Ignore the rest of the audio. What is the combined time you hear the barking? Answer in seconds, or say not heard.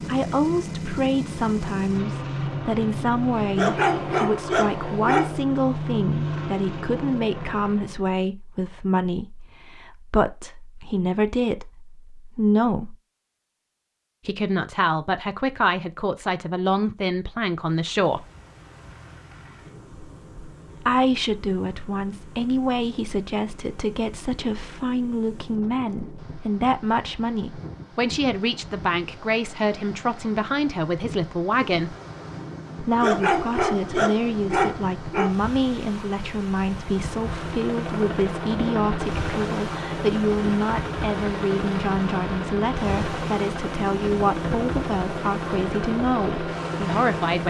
4 s.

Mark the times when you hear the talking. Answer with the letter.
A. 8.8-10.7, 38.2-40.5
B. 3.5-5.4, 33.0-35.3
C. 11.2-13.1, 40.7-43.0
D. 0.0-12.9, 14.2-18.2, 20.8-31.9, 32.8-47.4
D.